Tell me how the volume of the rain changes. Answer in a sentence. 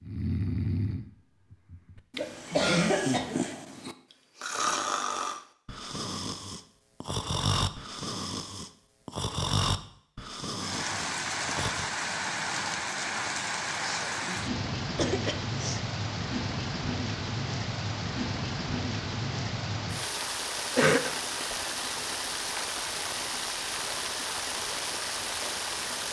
The volume of the rain stays about the same.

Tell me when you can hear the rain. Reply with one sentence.
The rain can be heard from 10.6 to 26.0 s.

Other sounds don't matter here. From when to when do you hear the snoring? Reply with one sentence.
You can hear the snoring from 0.0 to 11.9 s.